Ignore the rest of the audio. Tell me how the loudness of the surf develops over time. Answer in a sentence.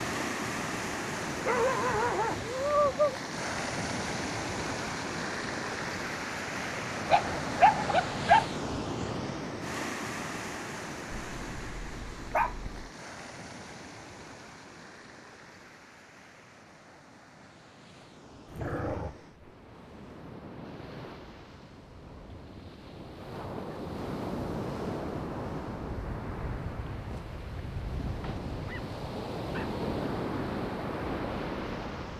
The loudness of the surf goes down, then up.